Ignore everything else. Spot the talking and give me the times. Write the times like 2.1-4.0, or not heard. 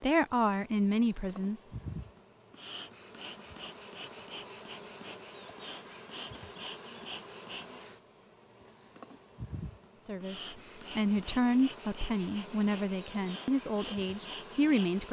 0.0-1.6, 10.1-15.0.